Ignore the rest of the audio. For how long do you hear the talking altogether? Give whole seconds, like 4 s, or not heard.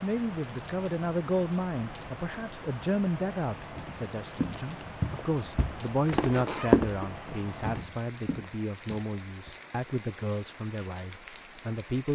12 s.